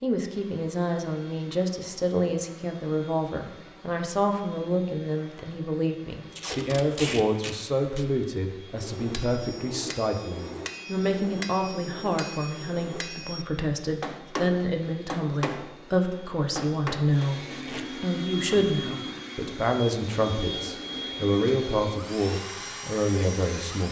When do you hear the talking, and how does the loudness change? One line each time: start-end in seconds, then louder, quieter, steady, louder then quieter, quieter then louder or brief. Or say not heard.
0.0-23.8 steady.